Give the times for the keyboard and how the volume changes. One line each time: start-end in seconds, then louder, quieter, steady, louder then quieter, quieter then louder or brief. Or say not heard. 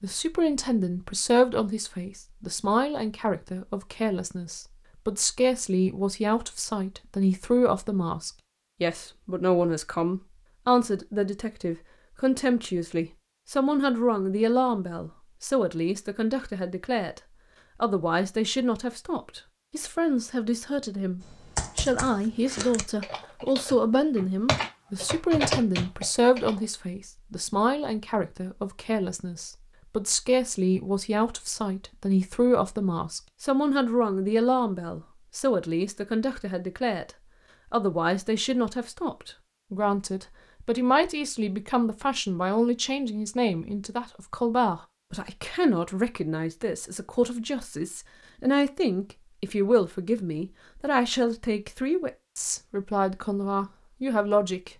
21.2-26.6 louder.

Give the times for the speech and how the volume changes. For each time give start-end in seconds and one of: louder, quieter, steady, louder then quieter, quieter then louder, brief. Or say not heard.
0.0-17.2 steady
17.8-37.1 steady
37.7-54.7 steady.